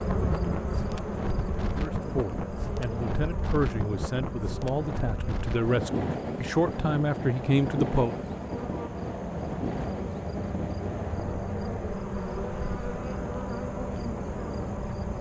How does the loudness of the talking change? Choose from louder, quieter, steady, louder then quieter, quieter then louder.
louder.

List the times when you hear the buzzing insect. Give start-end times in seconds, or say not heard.
0.0-15.1.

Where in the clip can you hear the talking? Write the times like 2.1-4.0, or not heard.
1.7-8.2.